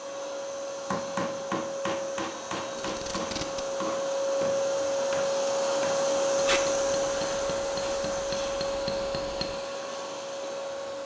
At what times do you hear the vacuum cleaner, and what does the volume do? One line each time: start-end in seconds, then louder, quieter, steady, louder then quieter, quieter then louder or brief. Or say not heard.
0.0-11.0 louder then quieter.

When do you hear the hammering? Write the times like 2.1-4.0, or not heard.
0.9-9.6.